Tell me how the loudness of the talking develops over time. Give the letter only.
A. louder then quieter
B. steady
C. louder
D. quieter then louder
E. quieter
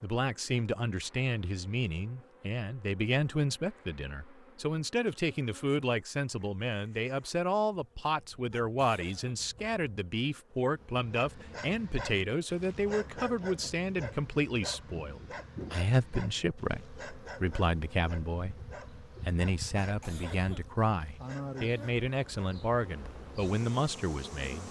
B.